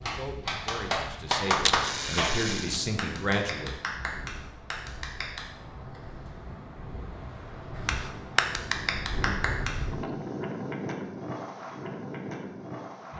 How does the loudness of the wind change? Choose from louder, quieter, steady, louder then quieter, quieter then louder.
louder.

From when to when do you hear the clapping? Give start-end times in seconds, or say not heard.
0.0-5.4, 7.8-9.8.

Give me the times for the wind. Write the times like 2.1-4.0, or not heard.
0.0-13.1.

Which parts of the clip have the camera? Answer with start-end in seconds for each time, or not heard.
1.6-2.8.